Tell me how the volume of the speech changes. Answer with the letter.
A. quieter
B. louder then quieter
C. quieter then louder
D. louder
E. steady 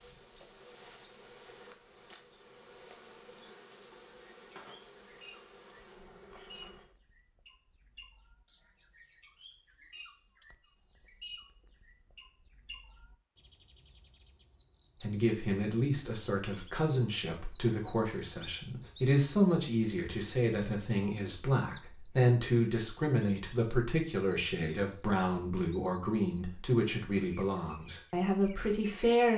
E.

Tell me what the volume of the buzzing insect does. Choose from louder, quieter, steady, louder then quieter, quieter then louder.
steady.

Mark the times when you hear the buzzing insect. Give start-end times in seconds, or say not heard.
0.0-7.0.